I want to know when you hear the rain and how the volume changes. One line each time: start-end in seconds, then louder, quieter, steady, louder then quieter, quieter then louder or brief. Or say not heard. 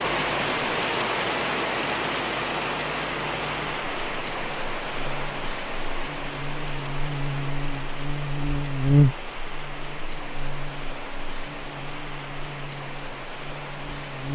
0.0-14.3 quieter.